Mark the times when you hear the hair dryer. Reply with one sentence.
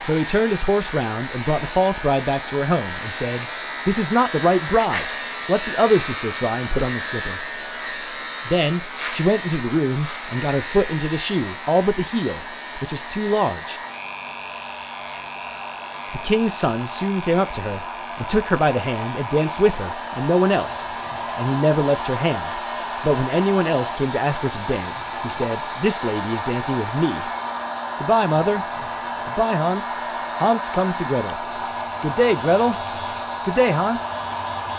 The hair dryer can be heard from 0.0 to 34.7 s.